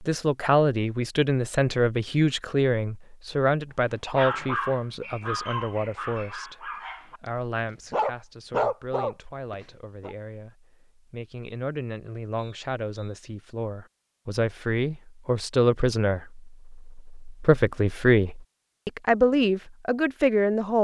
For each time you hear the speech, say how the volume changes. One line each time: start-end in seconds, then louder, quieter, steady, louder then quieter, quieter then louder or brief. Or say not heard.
0.0-20.7 quieter then louder.